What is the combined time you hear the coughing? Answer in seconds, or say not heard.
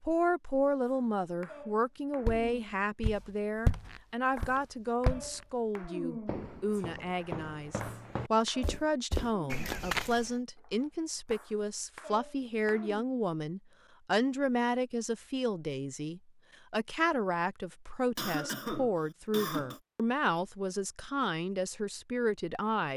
2 s.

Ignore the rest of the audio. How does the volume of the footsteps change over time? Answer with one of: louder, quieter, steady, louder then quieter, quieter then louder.
quieter then louder.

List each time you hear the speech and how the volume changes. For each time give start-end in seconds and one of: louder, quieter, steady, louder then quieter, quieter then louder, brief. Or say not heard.
0.0-22.9 steady.